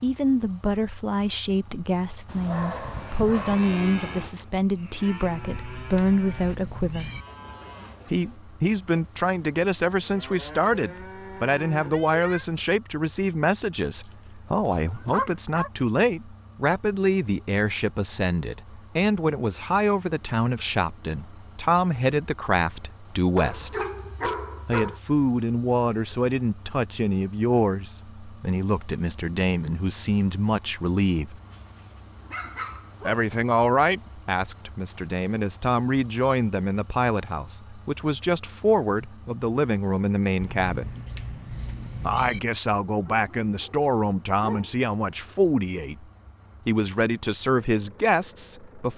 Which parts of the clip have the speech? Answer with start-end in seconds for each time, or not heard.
0.0-7.1, 8.1-23.8, 24.6-31.4, 33.0-40.9, 42.0-46.0, 46.6-48.9.